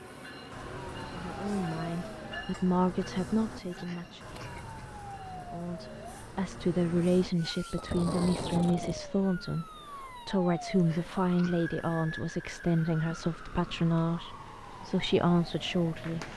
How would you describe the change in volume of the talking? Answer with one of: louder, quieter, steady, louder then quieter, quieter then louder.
steady.